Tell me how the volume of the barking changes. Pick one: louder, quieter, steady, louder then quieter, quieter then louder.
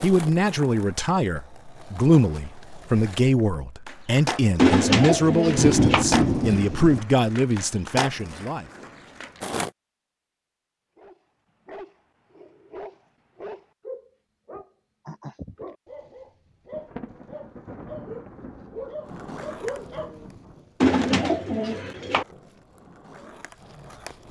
louder.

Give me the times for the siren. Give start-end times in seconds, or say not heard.
not heard.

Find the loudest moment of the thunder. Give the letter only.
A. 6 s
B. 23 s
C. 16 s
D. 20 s
A.